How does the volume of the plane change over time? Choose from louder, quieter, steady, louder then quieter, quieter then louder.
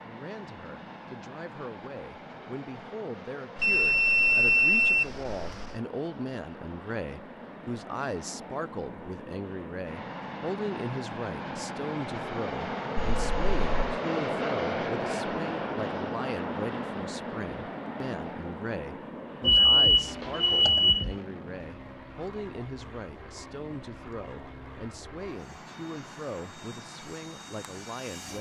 louder then quieter.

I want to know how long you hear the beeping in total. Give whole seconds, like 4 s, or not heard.
5 s.